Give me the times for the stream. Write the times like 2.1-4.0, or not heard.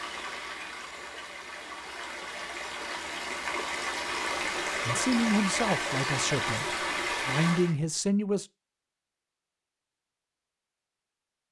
0.0-7.8.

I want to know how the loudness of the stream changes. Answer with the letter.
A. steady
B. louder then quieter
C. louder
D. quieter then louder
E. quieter
C.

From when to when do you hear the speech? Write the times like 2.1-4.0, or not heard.
4.8-8.4.